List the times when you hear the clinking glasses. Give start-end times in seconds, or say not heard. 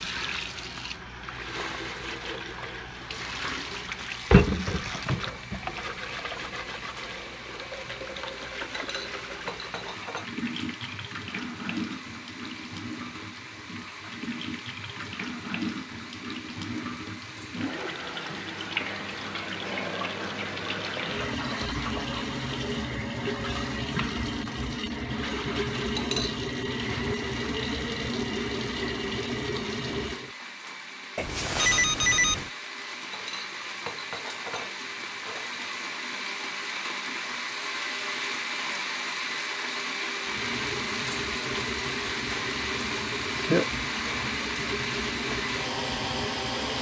8.7-10.3, 25.9-26.4, 33.1-35.6.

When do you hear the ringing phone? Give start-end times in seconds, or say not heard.
31.1-32.5.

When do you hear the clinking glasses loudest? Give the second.
26 s.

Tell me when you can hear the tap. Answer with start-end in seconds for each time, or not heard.
0.0-30.3, 40.2-46.7.